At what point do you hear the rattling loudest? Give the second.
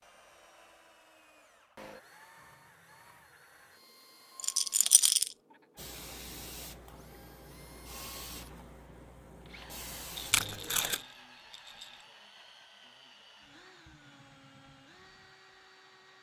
5 s.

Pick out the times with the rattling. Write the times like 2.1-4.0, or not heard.
4.3-5.3, 10.2-12.1.